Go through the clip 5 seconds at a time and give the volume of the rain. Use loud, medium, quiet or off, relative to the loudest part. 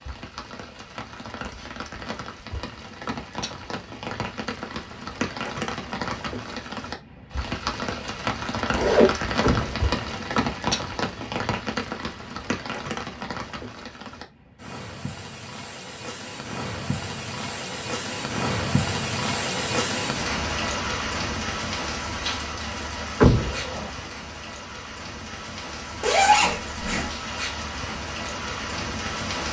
medium, loud, loud, loud, loud, loud.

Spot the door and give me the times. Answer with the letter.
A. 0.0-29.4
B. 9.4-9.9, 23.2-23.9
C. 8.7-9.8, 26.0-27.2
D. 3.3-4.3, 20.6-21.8
B.